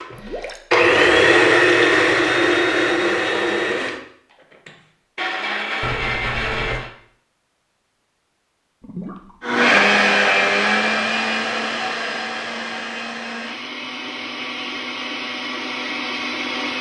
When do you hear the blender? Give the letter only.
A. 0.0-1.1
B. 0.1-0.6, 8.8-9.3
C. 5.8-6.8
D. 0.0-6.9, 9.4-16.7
D.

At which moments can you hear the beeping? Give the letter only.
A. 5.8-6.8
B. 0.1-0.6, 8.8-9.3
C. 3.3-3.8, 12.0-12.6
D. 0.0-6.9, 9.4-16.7
A.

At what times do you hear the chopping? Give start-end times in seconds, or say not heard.
not heard.